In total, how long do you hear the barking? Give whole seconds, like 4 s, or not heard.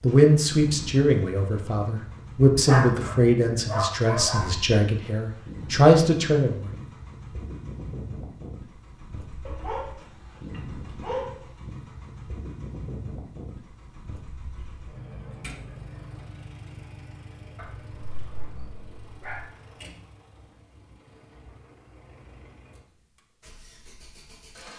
6 s.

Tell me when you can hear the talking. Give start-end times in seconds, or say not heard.
0.0-6.7.